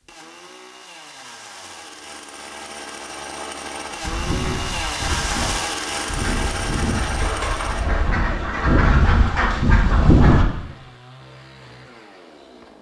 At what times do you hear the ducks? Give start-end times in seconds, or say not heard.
4.0-10.4.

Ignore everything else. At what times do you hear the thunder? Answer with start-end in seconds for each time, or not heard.
not heard.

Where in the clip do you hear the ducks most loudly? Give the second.
10 s.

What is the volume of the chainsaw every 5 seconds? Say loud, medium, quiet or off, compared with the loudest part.
medium, loud, quiet.